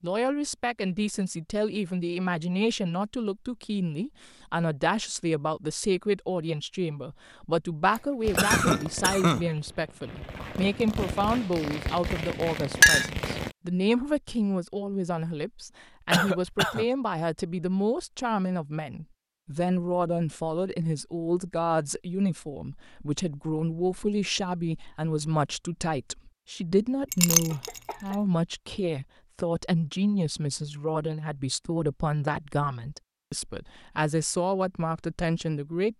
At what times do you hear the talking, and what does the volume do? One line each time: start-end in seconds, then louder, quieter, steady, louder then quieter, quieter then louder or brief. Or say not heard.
0.0-35.9 steady.